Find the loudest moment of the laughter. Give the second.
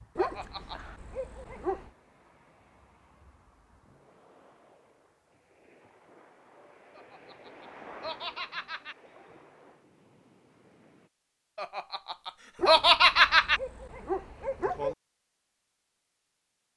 13 s.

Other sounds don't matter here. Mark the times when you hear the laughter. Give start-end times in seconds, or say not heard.
0.1-0.8, 7.0-8.9, 11.6-13.6.